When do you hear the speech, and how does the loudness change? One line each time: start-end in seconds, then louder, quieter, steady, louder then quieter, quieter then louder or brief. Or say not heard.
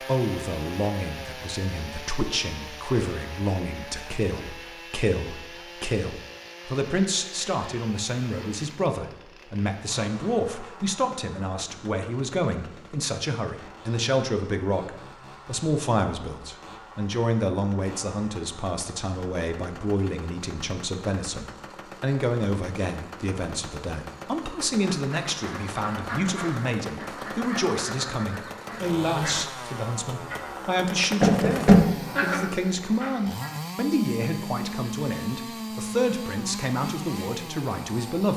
0.0-38.3 steady.